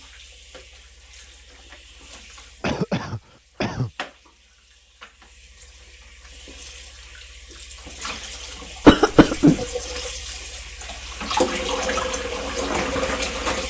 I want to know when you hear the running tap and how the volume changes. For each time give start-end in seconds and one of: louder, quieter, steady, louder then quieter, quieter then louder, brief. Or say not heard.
0.0-13.6 louder.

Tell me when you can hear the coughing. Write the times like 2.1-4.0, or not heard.
2.6-3.9, 8.8-9.7.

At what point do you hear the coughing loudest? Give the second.
9 s.